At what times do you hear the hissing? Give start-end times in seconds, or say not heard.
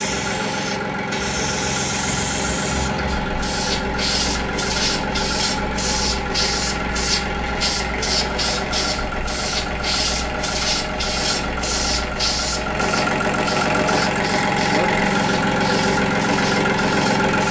0.0-17.4.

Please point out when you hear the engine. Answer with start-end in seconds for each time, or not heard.
0.0-17.4.